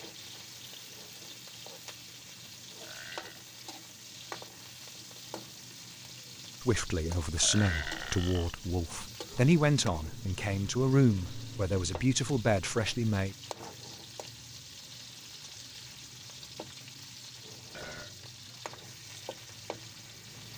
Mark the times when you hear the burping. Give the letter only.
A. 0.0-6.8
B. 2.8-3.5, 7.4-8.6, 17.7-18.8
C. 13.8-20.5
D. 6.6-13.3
B.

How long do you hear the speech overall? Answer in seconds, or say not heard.
7 s.